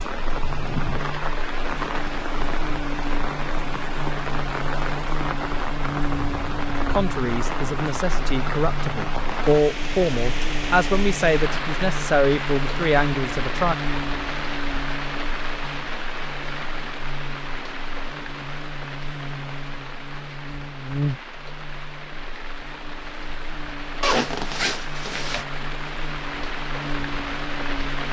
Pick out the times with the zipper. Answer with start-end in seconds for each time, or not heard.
24.0-25.4.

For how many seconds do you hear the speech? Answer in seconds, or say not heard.
7 s.